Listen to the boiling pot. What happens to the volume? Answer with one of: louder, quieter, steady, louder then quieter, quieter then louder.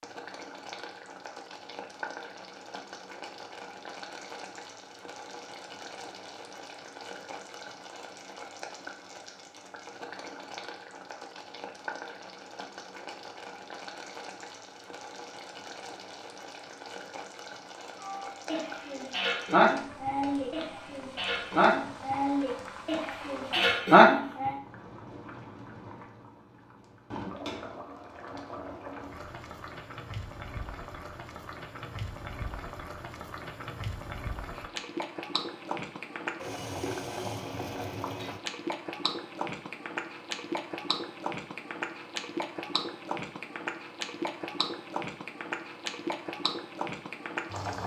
louder.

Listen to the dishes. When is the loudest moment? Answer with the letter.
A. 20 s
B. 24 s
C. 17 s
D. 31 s
B.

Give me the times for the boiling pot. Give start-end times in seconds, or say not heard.
0.0-47.8.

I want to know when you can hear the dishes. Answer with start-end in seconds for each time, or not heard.
18.0-24.6.